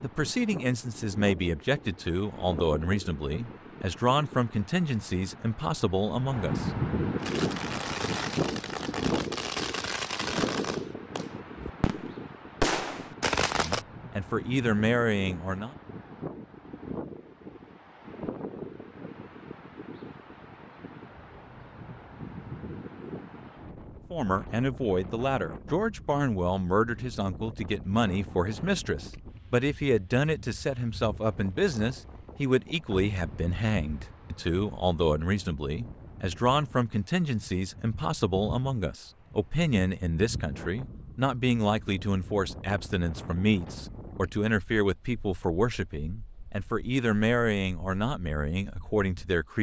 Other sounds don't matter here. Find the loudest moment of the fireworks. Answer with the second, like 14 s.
13 s.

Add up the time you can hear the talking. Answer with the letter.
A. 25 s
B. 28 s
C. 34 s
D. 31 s
C.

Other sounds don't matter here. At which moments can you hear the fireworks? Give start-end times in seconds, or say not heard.
7.2-13.8.